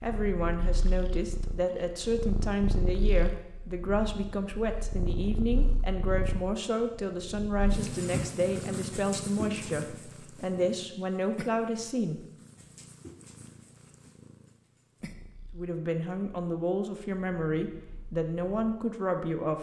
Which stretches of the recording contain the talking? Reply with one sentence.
You can hear the talking from 0.0 to 12.2 s and from 15.6 to 19.5 s.